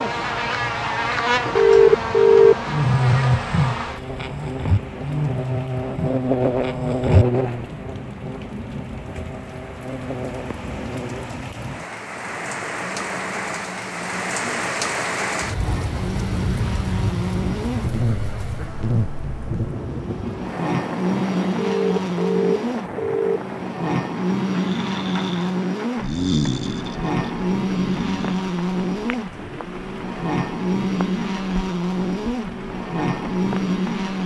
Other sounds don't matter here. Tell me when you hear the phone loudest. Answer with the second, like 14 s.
2 s.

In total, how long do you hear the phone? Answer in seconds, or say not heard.
3 s.